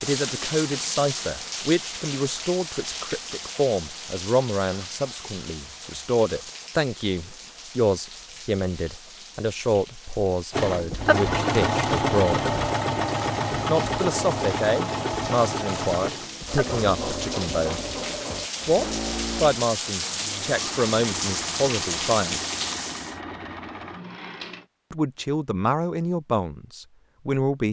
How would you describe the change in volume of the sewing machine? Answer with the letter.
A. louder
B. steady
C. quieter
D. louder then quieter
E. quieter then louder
C.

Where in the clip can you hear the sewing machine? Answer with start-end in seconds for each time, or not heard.
10.5-24.6.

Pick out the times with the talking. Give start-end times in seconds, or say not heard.
0.0-12.5, 13.7-17.8, 18.6-22.4, 24.9-27.6.